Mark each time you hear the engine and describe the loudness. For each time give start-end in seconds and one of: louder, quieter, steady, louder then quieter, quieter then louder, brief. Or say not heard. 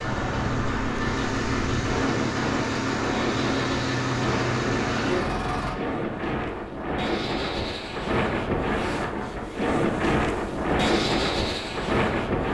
0.0-5.8 steady.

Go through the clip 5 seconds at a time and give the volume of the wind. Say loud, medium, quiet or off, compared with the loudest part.
medium, loud, loud.